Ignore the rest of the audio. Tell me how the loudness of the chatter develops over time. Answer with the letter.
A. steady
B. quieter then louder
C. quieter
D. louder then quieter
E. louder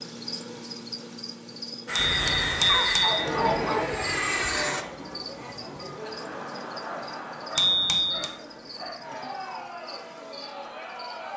C.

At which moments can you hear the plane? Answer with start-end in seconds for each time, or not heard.
1.9-4.8.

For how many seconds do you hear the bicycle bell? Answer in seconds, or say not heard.
2 s.